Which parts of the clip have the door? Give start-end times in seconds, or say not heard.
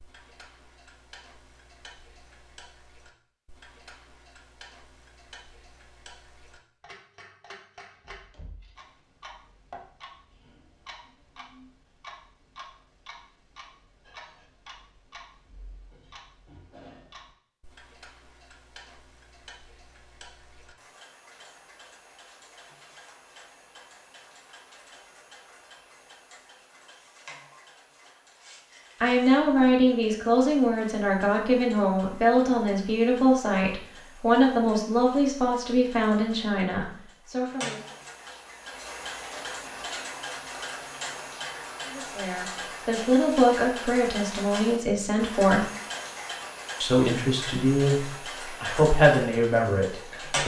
7.9-8.9.